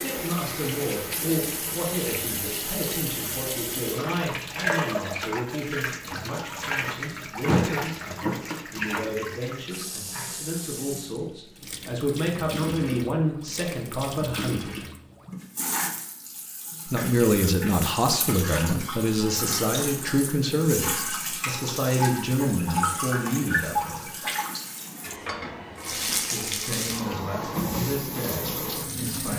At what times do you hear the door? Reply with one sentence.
The door can be heard from 7.5 to 8.6 s.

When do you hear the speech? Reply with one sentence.
The speech can be heard from 0.0 to 14.8 s, from 16.9 to 24.1 s and from 26.1 to 29.3 s.